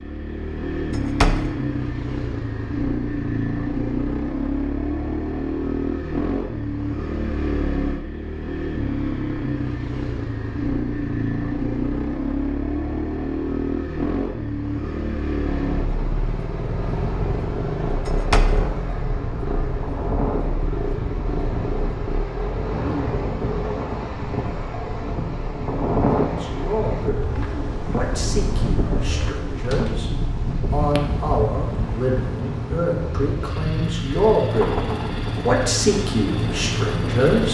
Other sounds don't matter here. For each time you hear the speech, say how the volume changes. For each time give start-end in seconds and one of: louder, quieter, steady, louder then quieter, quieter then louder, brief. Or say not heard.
26.2-27.2 brief
27.9-34.8 louder
35.4-37.4 brief.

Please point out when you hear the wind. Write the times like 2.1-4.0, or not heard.
15.4-37.4.